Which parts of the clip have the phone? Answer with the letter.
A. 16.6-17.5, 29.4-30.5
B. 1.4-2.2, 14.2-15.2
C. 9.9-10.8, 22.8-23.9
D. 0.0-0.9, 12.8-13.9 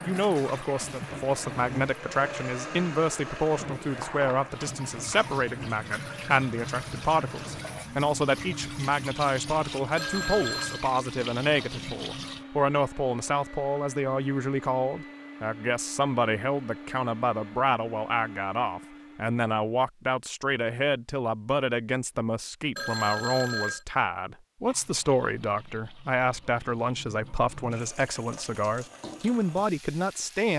C.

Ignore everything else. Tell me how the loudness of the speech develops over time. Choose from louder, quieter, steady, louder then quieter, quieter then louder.
steady.